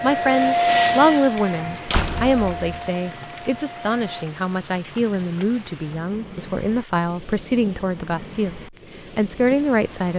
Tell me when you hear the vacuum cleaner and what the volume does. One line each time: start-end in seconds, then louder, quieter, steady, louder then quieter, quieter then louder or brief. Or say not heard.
0.0-4.3 quieter.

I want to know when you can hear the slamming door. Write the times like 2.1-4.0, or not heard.
1.9-2.8.